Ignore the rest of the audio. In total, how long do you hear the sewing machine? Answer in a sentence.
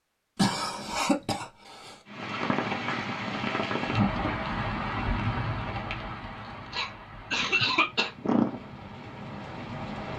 The sewing machine can't be heard in this clip.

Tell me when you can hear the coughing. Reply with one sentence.
You can hear the coughing from 0.3 to 2.0 s and from 6.7 to 8.6 s.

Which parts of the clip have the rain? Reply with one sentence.
The rain can be heard from 2.0 to 10.1 s.